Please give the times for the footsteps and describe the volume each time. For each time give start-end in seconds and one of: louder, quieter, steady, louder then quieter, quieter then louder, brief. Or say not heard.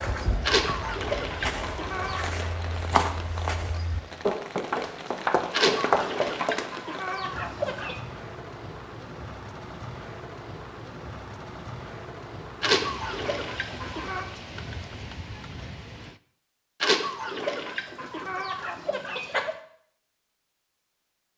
0.0-6.7 louder.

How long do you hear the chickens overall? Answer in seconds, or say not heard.
9 s.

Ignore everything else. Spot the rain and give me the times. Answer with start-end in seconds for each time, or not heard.
0.0-16.2.